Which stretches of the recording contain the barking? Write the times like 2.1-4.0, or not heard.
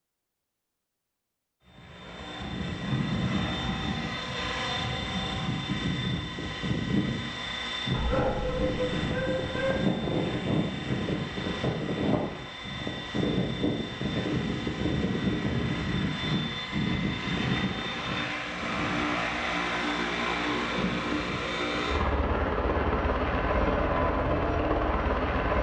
7.9-9.8.